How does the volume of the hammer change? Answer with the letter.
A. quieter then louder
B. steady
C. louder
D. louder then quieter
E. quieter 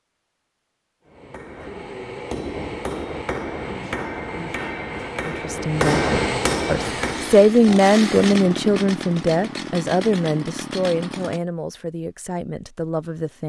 C.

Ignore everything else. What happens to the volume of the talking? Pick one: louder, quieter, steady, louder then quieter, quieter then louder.
louder then quieter.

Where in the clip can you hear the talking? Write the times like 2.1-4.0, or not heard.
5.2-13.4.